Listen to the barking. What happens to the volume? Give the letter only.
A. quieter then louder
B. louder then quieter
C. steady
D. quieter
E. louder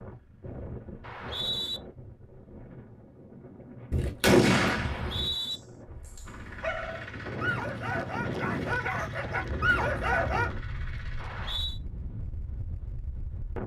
E.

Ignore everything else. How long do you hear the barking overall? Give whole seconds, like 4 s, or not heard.
5 s.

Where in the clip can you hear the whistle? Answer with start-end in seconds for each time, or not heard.
1.0-1.8, 4.8-5.6, 11.2-11.8.